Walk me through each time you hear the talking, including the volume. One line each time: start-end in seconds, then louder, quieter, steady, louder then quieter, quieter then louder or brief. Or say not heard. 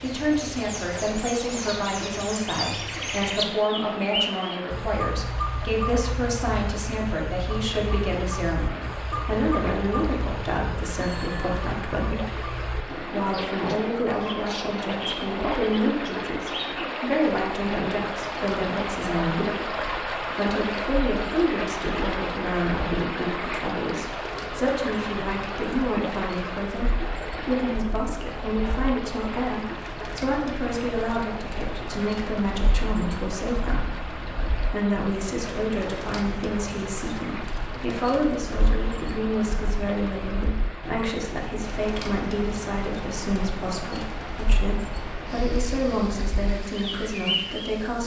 0.0-48.0 steady.